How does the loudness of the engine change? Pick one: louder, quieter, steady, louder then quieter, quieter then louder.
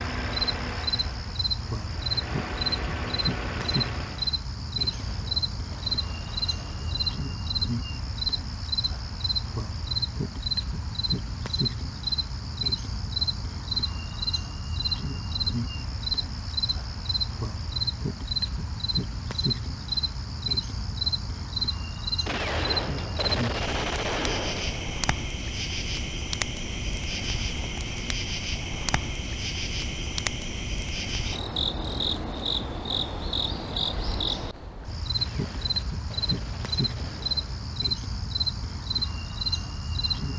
quieter then louder.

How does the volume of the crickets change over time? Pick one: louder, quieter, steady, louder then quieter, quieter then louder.
steady.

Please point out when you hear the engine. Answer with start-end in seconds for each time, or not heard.
0.0-4.4.